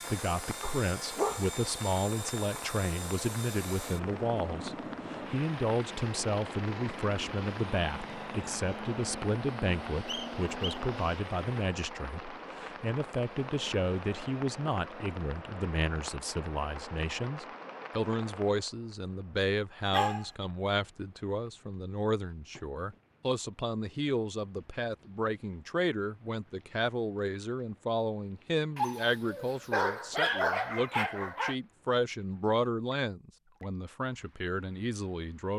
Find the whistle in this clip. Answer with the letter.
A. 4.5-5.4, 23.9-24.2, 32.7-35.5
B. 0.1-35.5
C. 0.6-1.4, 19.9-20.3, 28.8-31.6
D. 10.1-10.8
D.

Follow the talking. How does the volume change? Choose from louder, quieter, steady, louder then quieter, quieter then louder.
steady.